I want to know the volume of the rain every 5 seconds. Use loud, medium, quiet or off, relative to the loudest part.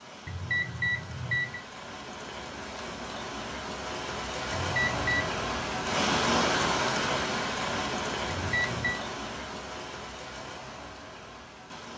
medium, loud, quiet.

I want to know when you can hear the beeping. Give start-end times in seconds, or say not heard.
0.2-1.6, 4.5-5.3, 8.2-9.0.